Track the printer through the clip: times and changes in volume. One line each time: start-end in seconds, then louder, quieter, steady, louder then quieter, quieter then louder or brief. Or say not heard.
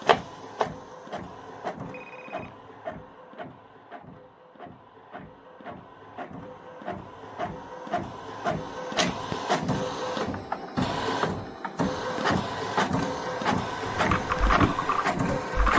0.0-15.7 quieter then louder.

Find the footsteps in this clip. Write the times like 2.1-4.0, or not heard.
not heard.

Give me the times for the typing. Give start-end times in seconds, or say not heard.
13.8-15.7.